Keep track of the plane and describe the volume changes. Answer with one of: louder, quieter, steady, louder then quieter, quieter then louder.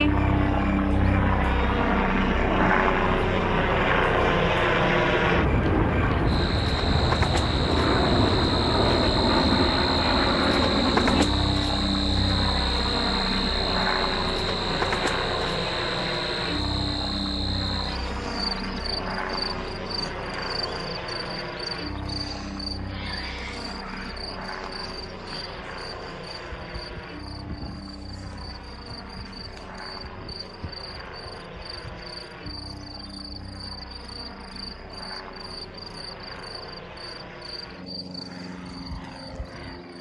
quieter.